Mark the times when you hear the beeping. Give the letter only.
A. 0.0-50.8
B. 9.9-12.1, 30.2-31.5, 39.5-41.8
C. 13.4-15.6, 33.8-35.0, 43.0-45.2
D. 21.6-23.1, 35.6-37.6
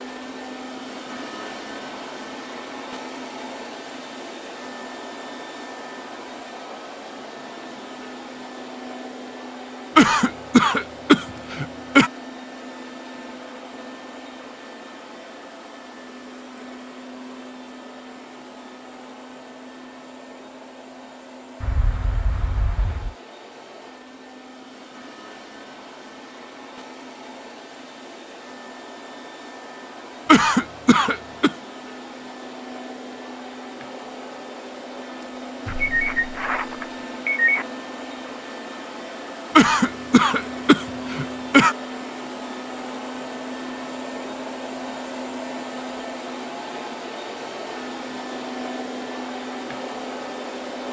D.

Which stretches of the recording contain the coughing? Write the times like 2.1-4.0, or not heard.
9.9-12.1, 30.2-31.5, 39.5-41.8.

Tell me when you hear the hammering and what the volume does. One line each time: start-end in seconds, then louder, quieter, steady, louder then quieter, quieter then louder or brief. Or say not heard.
not heard.